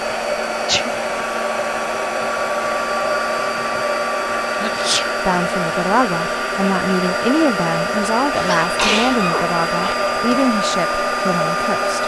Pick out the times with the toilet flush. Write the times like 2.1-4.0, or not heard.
not heard.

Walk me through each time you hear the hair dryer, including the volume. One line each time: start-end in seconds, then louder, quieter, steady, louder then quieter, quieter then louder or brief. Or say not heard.
0.0-12.0 steady.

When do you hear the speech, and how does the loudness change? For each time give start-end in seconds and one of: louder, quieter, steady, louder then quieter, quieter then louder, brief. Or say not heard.
5.2-12.0 steady.